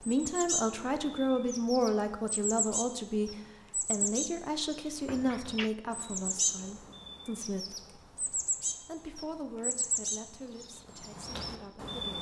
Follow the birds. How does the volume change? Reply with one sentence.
The loudness of the birds stays about the same.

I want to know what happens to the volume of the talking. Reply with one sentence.
The loudness of the talking goes down.